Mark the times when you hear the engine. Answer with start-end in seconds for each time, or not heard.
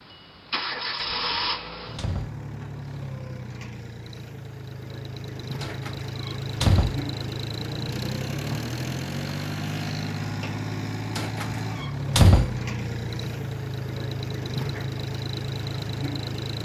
0.0-16.5.